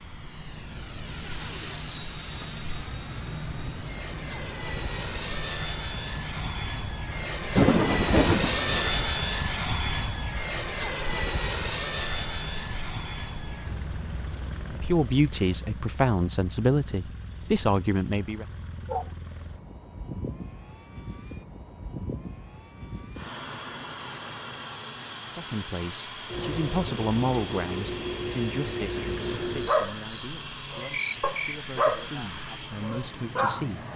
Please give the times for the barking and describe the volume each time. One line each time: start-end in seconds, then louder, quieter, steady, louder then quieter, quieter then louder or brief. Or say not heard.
29.5-33.6 louder then quieter.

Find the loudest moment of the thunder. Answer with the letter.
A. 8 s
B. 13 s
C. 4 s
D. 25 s
A.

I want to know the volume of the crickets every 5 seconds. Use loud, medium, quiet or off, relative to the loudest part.
quiet, quiet, quiet, medium, loud, loud, loud.